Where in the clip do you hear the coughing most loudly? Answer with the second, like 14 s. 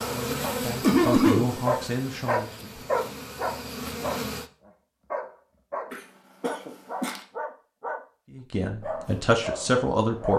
1 s.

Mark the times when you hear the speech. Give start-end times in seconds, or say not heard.
0.0-2.9, 8.3-10.3.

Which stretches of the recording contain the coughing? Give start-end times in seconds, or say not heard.
0.8-1.5, 5.9-7.2.